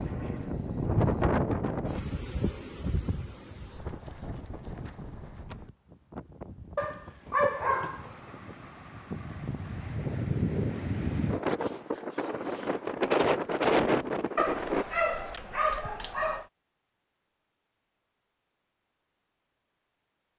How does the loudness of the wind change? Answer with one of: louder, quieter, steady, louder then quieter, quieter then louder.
quieter then louder.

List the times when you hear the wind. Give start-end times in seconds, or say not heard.
0.0-14.8.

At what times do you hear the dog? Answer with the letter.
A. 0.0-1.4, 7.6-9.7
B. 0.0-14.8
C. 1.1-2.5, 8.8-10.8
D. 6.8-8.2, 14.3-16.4
D.